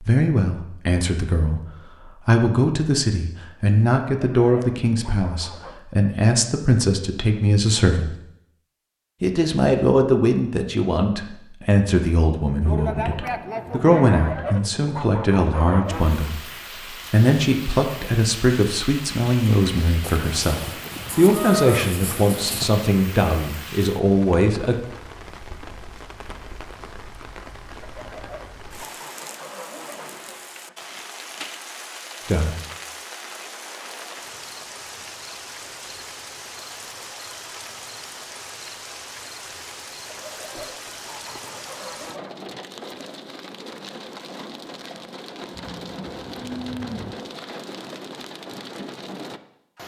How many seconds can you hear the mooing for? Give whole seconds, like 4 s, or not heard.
6 s.